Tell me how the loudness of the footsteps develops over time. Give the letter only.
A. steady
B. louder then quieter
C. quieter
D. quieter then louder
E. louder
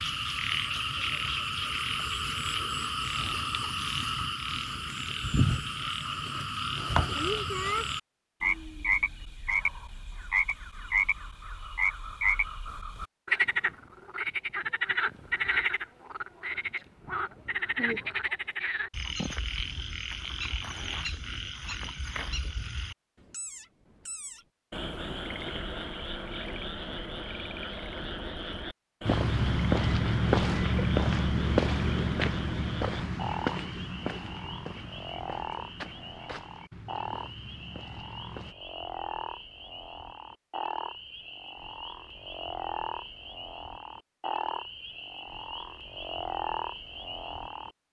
C.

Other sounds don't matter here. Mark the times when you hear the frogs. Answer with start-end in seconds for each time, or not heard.
0.0-47.8.